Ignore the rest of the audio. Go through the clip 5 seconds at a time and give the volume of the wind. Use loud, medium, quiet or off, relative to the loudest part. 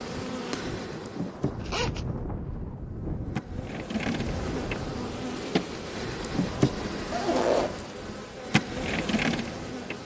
loud, medium.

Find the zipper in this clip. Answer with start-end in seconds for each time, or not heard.
1.6-2.1, 7.1-7.8.